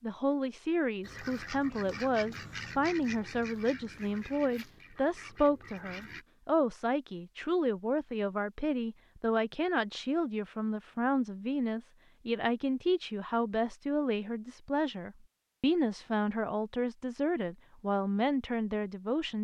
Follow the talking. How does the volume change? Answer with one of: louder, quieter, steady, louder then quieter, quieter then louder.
steady.